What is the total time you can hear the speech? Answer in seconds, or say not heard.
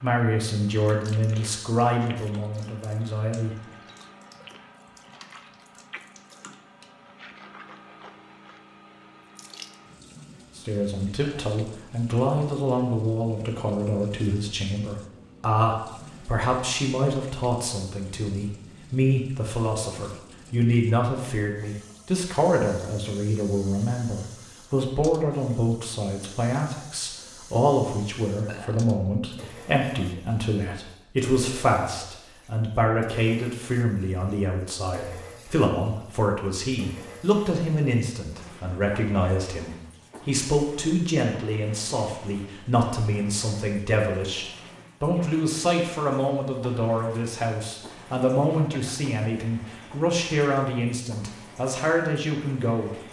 46 s.